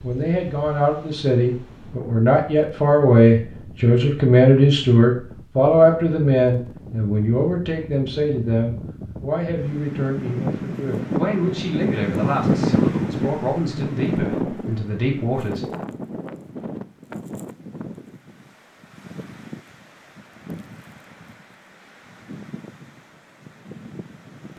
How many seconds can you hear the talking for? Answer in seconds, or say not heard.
16 s.